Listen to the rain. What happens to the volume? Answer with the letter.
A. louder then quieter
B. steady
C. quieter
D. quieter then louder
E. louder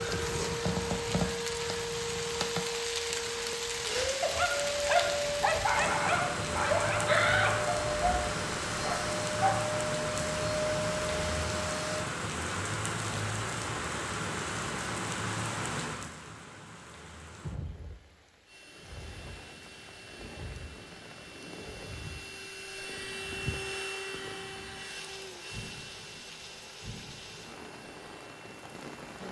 C.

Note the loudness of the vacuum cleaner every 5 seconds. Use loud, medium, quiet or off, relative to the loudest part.
loud, loud, loud, quiet, medium, quiet.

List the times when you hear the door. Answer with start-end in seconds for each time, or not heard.
7.0-8.2.